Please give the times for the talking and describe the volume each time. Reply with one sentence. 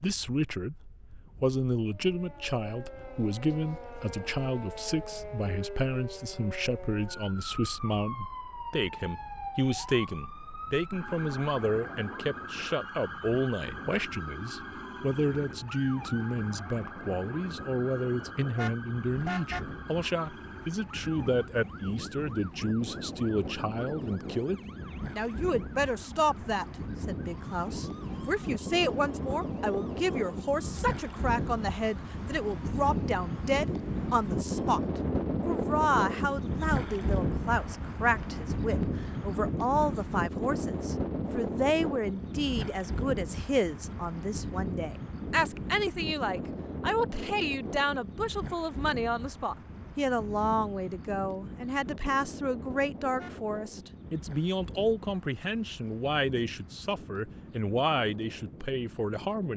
You can hear the talking briefly from 0.0 to 0.8 s; from 1.4 to 34.8 s, at a steady volume; and from 35.5 to 59.5 s, at a steady volume.